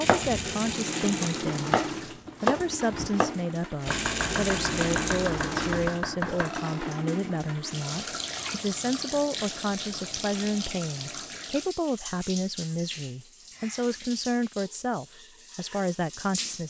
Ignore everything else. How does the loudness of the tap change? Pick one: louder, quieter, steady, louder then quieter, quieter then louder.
quieter.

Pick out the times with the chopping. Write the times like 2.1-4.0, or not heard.
0.0-6.7.